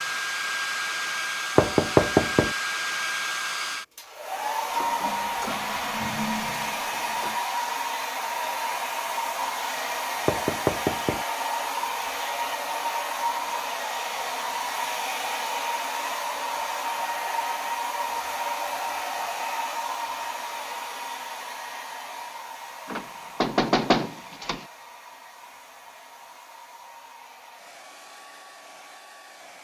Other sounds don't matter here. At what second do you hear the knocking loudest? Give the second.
2 s.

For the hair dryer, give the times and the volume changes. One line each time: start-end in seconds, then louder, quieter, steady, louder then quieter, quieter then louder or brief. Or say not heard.
0.0-29.6 quieter.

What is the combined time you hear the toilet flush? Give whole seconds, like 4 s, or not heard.
3 s.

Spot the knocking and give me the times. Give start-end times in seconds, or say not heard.
1.6-2.5, 10.2-11.2, 22.9-24.6.